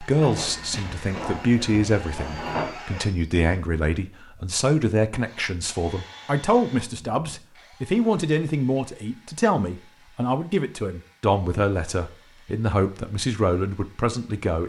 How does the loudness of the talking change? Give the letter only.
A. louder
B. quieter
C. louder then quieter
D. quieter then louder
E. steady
E.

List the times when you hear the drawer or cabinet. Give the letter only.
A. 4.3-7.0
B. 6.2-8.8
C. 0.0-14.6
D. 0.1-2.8
D.